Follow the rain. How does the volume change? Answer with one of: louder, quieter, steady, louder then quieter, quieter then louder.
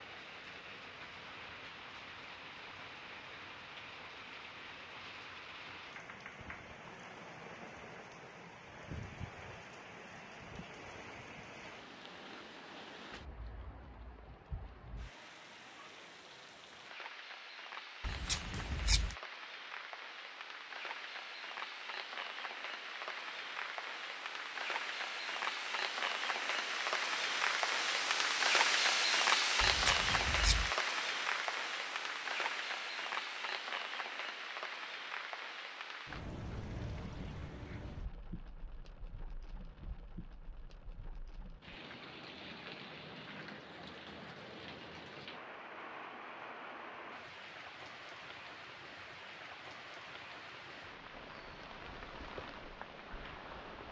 louder then quieter.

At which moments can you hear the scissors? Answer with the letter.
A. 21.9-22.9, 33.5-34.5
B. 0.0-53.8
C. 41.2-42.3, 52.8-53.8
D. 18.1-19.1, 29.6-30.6
D.